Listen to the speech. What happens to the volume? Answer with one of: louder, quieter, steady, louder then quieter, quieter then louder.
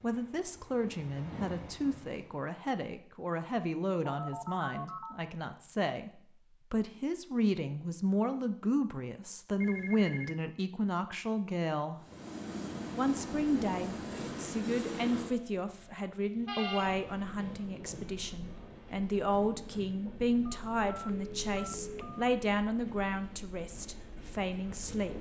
steady.